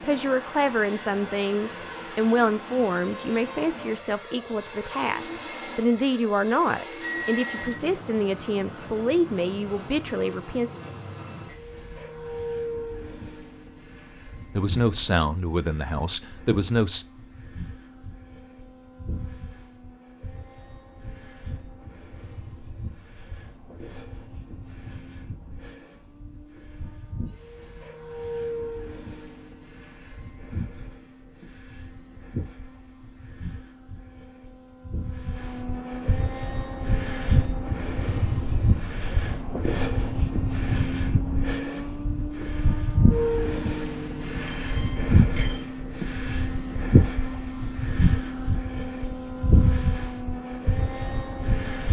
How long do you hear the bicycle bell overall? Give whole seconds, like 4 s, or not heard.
2 s.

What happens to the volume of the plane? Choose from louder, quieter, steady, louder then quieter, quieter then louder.
louder.